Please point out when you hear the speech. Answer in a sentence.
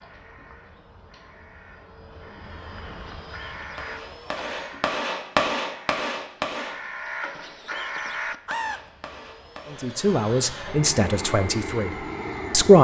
You can hear the speech from 9.7 to 12.7 s.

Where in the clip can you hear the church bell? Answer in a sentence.
You can't hear the church bell here.